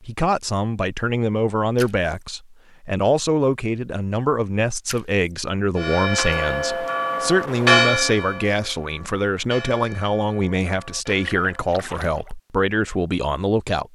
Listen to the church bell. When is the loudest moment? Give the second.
8 s.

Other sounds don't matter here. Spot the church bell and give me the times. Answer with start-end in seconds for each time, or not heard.
5.8-11.8.